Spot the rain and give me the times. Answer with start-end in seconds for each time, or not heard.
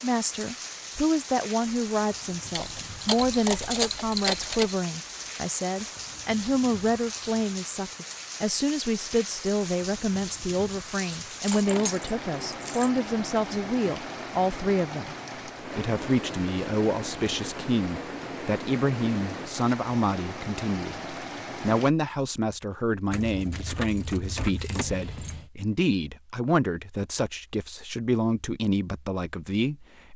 0.0-21.9.